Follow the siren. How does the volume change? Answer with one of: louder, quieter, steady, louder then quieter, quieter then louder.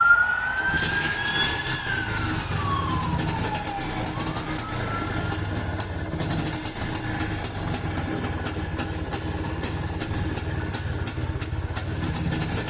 quieter.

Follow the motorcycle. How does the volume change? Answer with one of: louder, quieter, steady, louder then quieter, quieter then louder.
steady.